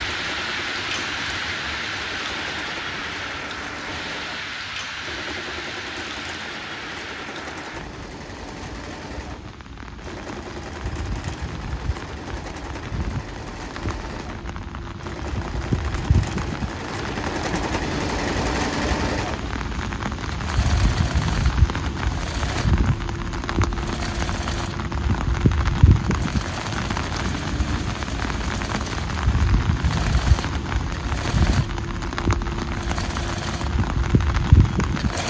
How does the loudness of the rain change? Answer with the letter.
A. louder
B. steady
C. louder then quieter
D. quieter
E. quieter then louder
E.